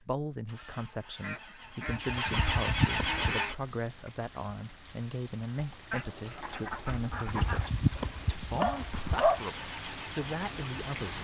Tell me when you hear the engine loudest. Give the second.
3 s.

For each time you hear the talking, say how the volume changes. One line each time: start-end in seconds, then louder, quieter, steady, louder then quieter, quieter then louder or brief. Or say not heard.
0.0-11.1 steady.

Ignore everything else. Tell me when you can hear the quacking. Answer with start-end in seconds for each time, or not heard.
1.1-3.6, 5.9-7.7.